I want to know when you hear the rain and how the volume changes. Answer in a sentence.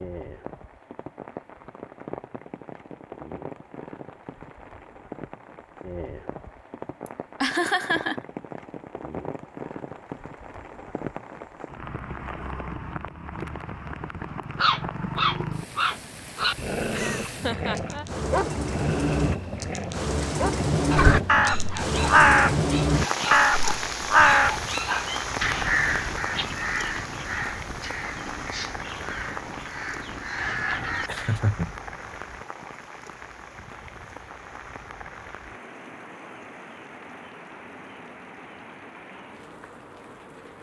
The rain can be heard from 0.0 to 40.5 s, getting louder then quieter.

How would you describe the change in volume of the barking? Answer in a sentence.
The loudness of the barking goes down.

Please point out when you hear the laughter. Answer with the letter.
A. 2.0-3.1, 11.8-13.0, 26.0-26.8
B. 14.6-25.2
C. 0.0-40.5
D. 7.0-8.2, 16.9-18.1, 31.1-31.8
D.